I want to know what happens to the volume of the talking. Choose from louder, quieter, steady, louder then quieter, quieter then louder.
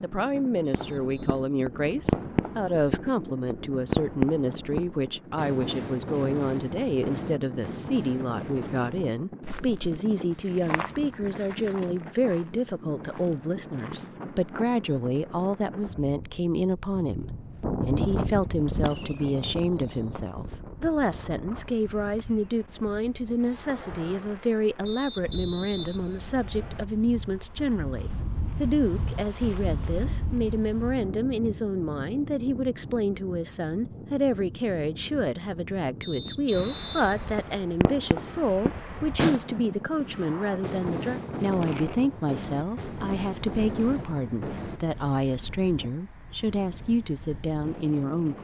steady.